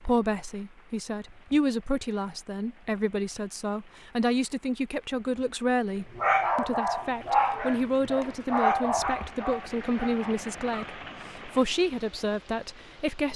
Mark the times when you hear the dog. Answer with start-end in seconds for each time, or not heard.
6.2-11.8.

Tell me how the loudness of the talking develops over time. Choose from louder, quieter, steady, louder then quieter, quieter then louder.
steady.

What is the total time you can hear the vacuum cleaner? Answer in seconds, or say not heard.
not heard.